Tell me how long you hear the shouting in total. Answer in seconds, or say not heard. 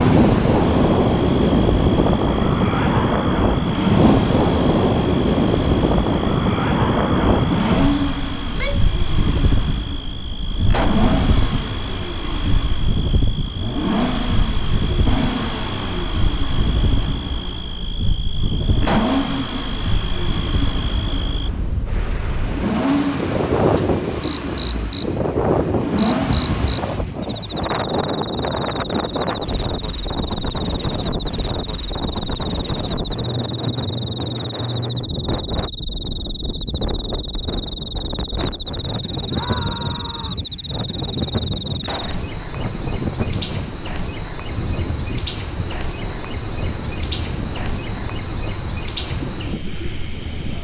2 s.